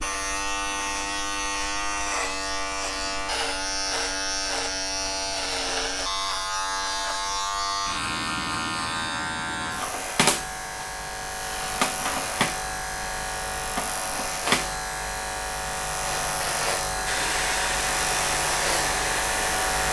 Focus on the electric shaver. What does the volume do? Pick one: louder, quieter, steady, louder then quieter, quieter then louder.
steady.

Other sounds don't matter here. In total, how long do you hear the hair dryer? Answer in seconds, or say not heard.
3 s.